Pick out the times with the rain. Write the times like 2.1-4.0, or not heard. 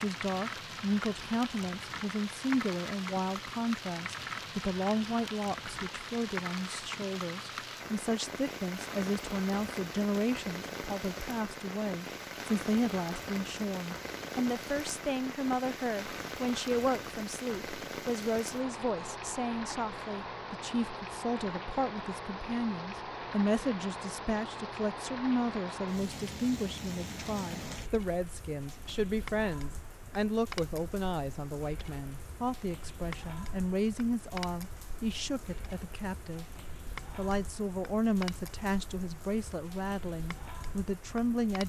0.0-41.6.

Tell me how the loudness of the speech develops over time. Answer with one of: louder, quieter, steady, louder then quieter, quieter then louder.
steady.